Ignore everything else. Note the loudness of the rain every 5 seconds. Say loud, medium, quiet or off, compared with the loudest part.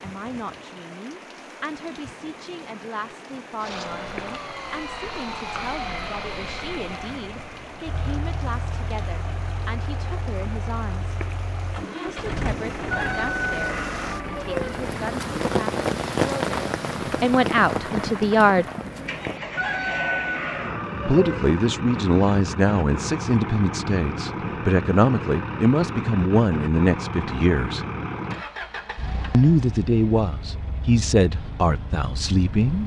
quiet, quiet, medium, loud, off, off, off.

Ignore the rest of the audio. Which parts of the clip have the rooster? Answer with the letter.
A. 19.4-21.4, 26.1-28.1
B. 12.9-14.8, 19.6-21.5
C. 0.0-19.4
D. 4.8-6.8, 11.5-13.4
B.